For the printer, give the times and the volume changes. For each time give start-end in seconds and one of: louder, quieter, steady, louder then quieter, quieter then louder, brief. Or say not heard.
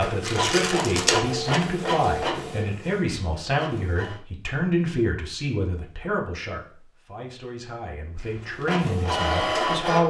0.0-4.2 quieter
8.2-10.0 brief.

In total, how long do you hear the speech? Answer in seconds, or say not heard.
10 s.